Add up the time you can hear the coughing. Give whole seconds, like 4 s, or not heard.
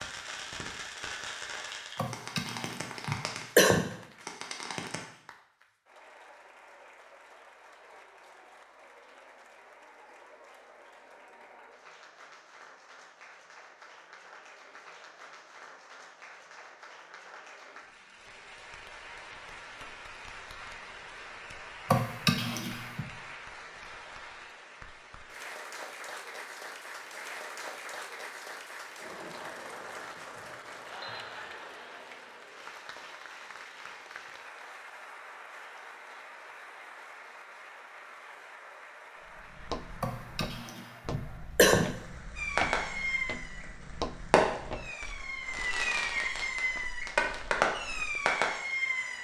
5 s.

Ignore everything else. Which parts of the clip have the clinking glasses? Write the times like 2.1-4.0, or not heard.
30.4-31.4.